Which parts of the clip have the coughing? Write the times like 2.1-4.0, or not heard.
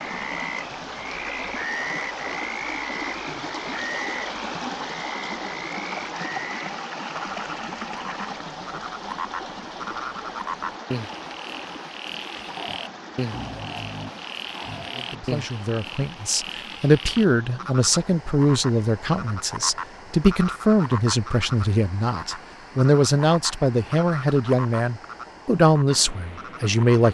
not heard.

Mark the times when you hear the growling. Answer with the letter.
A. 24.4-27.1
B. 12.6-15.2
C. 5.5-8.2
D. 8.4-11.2
B.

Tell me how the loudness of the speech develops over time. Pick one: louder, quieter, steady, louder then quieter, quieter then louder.
steady.